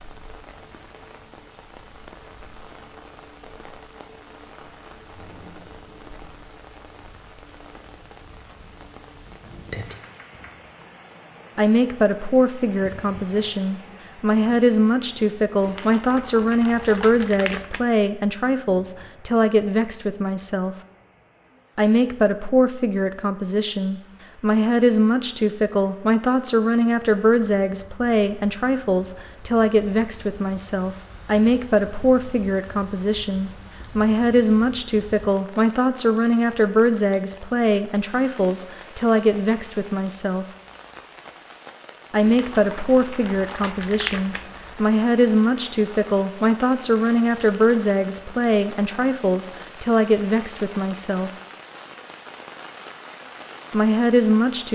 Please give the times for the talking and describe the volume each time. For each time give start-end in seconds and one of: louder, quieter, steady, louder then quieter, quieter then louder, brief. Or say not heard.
11.6-20.8 steady
21.8-40.5 steady
42.1-51.3 steady
53.7-54.7 brief.